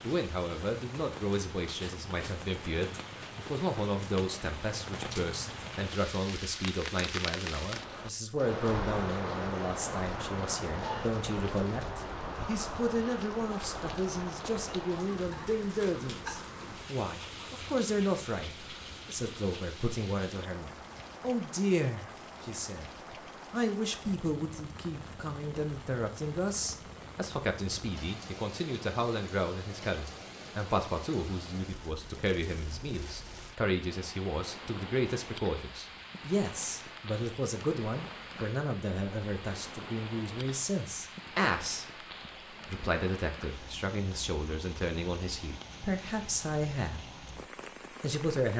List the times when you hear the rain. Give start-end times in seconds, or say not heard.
0.0-48.5.